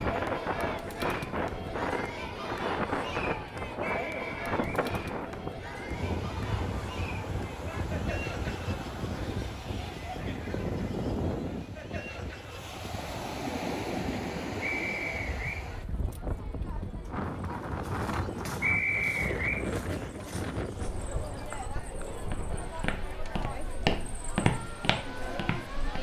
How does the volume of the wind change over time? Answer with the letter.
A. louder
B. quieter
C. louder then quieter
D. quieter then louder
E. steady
B.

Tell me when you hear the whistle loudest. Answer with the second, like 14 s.
19 s.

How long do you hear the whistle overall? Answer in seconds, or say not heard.
3 s.